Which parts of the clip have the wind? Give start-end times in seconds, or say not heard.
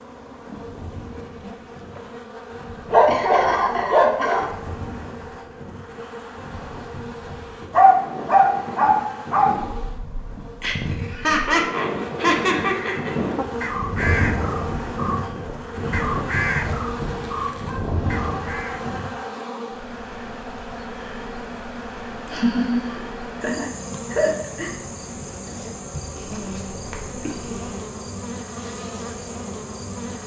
0.0-19.1.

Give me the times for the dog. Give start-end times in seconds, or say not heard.
2.9-4.5, 7.7-9.6, 16.5-18.0, 26.1-27.7.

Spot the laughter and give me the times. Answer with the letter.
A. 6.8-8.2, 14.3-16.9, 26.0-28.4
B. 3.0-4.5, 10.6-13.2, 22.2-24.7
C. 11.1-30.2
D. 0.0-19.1
B.